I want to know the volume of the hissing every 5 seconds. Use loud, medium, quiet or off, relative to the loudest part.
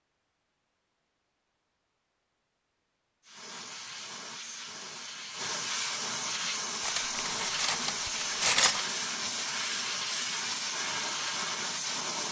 medium, loud, loud.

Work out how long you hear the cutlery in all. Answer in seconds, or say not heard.
2 s.